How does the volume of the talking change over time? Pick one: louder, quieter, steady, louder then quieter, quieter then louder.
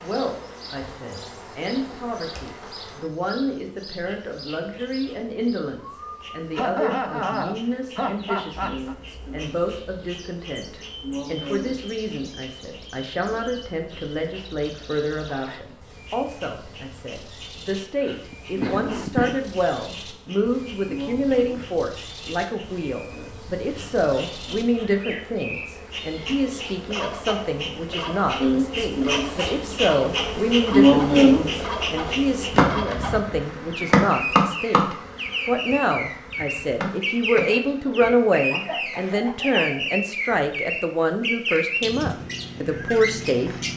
louder.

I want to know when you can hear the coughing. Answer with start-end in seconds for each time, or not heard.
6.2-8.9, 18.0-19.4, 37.5-39.9.